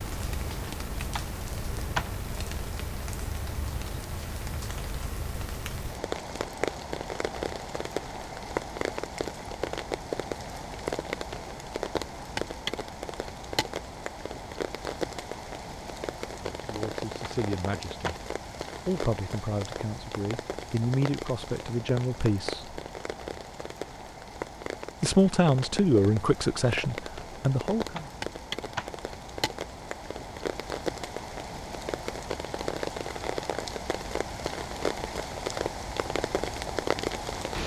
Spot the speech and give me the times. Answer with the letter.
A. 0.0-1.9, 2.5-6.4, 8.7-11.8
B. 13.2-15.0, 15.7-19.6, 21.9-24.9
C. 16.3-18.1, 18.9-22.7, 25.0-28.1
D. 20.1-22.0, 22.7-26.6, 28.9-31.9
C.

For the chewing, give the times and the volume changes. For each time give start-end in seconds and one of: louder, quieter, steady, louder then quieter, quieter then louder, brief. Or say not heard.
not heard.